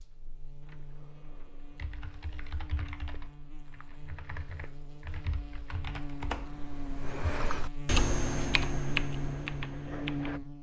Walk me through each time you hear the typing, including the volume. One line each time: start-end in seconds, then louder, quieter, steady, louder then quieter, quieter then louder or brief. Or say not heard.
0.6-10.4 louder.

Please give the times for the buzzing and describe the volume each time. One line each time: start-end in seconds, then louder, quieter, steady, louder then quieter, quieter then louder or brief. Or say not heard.
0.0-10.5 louder.